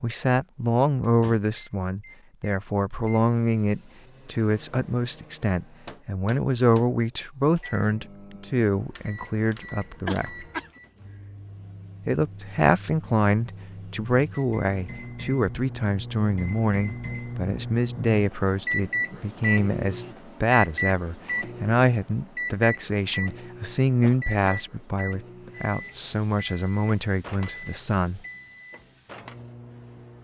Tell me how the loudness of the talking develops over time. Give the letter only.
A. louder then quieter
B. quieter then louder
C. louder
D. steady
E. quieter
D.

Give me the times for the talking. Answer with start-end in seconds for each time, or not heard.
0.0-10.4, 12.1-28.2.